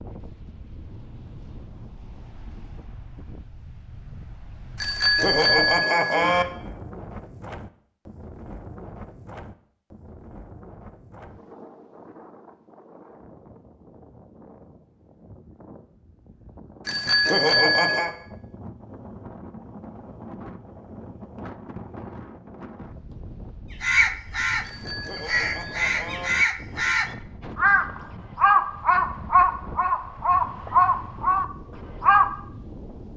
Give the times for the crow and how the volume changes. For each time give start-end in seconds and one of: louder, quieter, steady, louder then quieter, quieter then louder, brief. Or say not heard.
23.8-32.4 louder.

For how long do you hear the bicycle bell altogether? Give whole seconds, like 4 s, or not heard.
5 s.